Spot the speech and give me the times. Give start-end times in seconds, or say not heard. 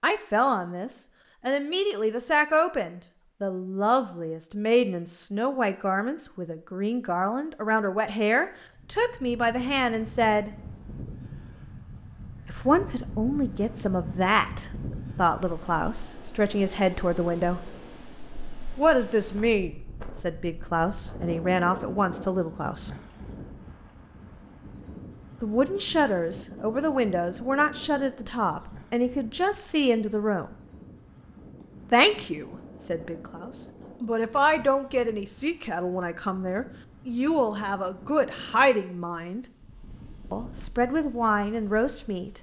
0.0-10.5, 12.4-17.6, 18.8-22.9, 25.4-30.6, 31.9-39.5, 40.3-42.3.